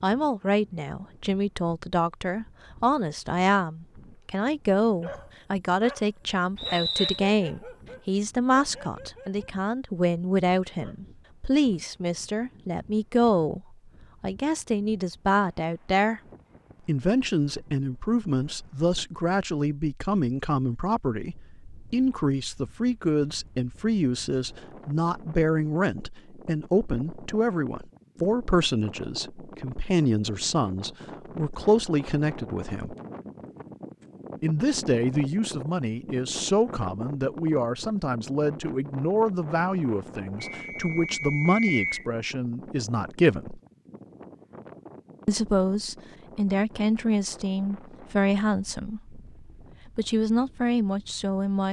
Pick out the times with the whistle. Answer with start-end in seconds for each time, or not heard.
6.5-7.2, 40.5-42.0.